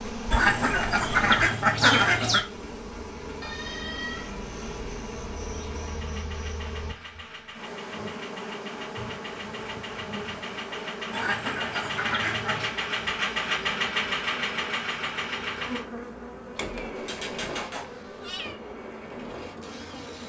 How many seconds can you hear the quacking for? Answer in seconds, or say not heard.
4 s.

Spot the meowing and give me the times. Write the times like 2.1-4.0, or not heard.
3.4-4.9, 16.6-18.6.